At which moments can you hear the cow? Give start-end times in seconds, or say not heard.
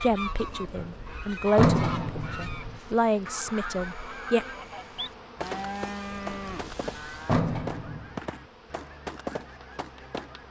5.4-7.4.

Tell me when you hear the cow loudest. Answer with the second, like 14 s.
6 s.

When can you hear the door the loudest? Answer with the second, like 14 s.
2 s.